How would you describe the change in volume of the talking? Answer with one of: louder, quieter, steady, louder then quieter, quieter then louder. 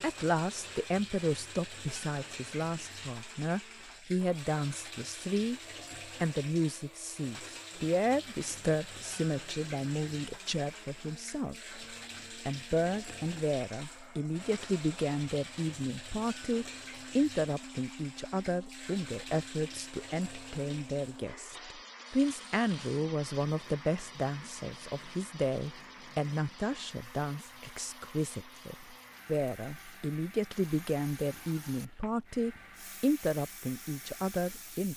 steady.